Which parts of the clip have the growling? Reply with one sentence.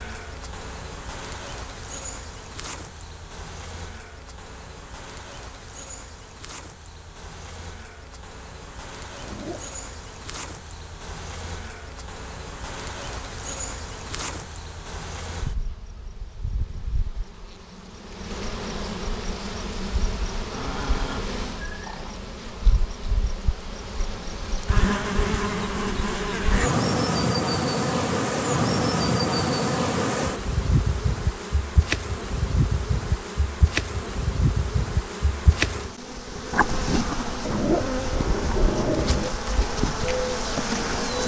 The growling can be heard from 9.2 to 9.8 s, from 20.5 to 22.2 s and from 37.4 to 39.4 s.